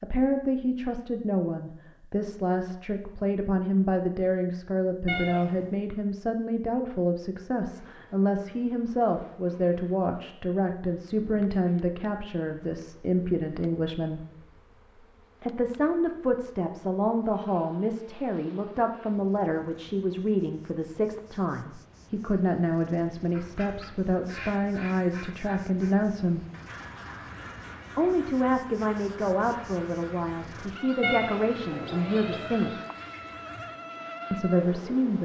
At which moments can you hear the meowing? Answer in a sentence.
The meowing can be heard from 5.0 to 5.7 s and from 31.0 to 32.8 s.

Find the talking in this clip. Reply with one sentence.
The talking can be heard from 0.0 to 14.2 s, from 15.4 to 26.4 s, from 27.9 to 32.8 s and from 34.3 to 35.2 s.